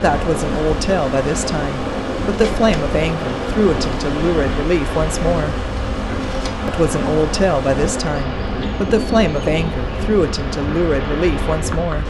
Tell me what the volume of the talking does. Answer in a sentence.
The loudness of the talking stays about the same.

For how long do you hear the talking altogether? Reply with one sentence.
You can hear the talking for 11 seconds altogether.